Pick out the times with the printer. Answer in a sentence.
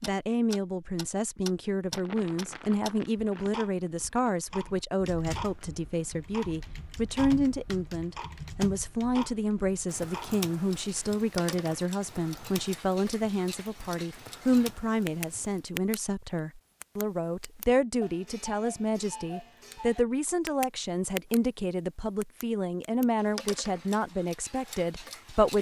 The printer can't be heard in this clip.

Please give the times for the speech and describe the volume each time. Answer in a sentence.
The speech can be heard from 0.0 to 25.5 s, at a steady volume.